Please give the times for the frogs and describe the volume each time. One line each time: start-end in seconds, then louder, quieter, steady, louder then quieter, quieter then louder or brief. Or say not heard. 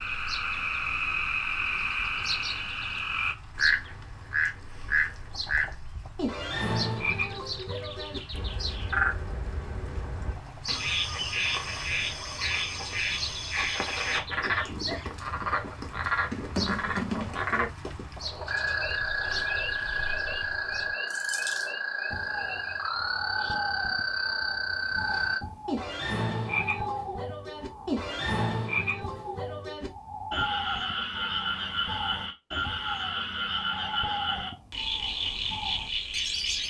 0.0-36.6 steady.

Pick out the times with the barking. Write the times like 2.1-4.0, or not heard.
not heard.